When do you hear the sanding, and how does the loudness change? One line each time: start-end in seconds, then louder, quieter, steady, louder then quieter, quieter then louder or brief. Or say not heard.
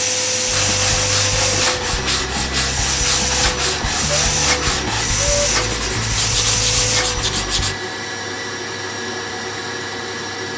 0.5-7.8 steady.